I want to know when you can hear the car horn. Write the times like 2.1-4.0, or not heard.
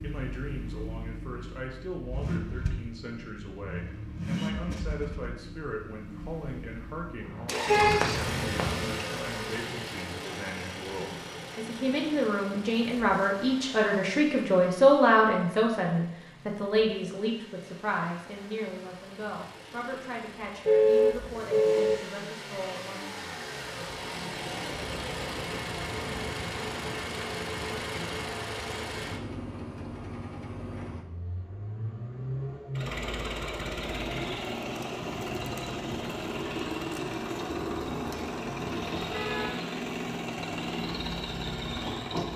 7.7-9.1, 20.6-21.9, 37.5-39.5.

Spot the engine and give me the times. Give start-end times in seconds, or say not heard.
0.0-42.3.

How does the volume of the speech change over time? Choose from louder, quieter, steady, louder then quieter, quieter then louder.
louder then quieter.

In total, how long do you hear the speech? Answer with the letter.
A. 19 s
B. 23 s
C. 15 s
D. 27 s
B.